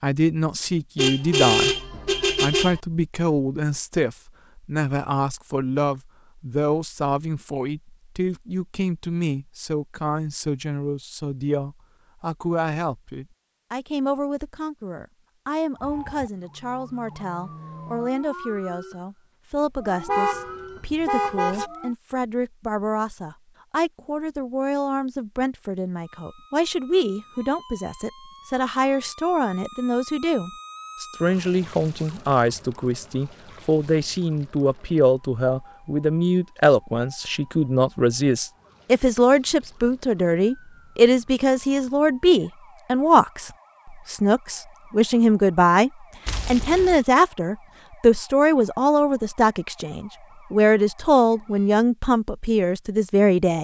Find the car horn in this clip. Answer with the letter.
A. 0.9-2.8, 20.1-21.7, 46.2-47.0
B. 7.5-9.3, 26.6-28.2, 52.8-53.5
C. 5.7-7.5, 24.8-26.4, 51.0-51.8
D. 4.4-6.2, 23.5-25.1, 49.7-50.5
A.